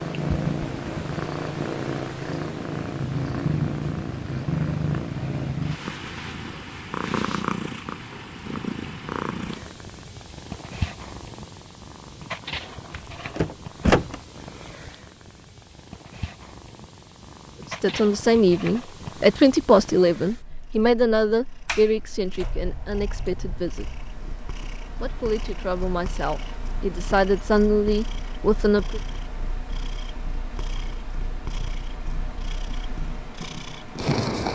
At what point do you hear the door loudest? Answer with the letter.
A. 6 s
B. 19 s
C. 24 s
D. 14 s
D.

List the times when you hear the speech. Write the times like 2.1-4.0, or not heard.
17.7-23.9, 25.0-29.0.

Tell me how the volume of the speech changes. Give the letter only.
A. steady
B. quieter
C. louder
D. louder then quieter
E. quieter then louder
E.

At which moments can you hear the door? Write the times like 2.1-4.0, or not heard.
12.9-14.2, 21.6-24.2.